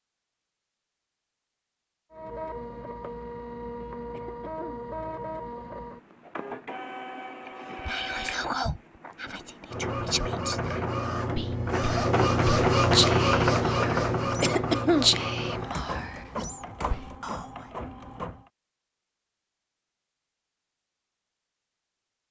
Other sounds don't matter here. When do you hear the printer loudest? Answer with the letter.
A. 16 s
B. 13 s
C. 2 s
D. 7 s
B.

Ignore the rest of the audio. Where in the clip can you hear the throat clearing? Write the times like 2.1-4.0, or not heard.
4.1-4.9, 14.4-15.1.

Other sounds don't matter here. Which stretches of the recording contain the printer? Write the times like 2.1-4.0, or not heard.
2.1-18.5.